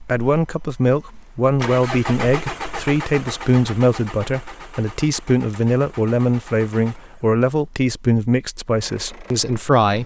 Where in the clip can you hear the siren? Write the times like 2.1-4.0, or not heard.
not heard.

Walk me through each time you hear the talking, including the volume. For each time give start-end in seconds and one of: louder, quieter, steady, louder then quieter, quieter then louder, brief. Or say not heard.
0.0-10.0 steady.